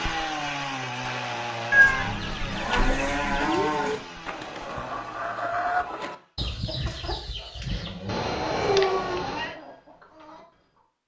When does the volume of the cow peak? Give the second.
9 s.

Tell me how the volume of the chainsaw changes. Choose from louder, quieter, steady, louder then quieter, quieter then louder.
quieter.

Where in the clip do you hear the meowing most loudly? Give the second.
2 s.